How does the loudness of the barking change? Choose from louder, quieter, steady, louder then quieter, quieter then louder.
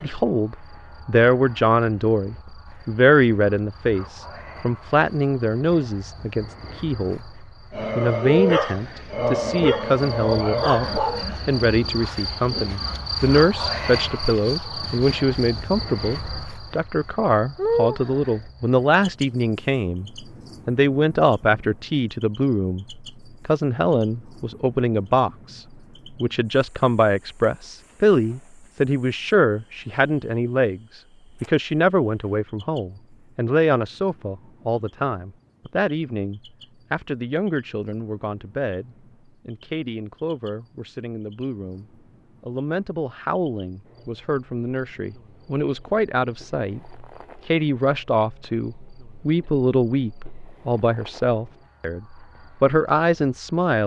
quieter.